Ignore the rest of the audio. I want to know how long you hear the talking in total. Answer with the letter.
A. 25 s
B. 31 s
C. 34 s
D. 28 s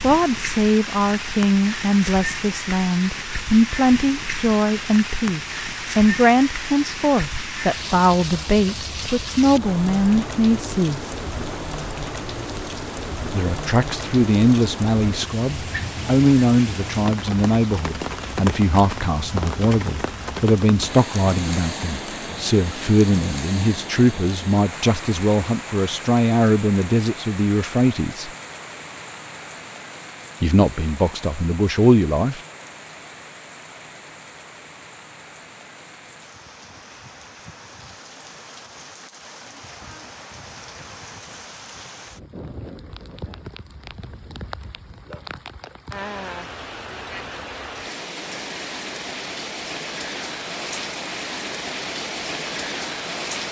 D.